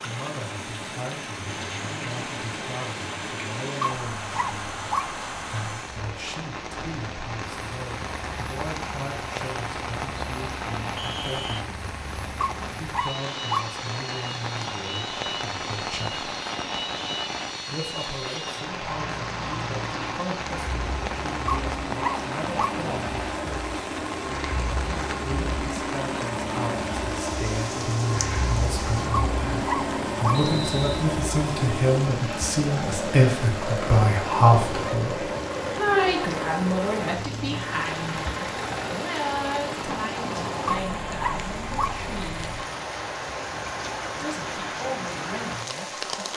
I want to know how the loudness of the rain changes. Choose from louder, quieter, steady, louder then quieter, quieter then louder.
steady.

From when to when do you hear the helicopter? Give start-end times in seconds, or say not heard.
0.0-46.3.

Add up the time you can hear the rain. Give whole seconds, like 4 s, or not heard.
46 s.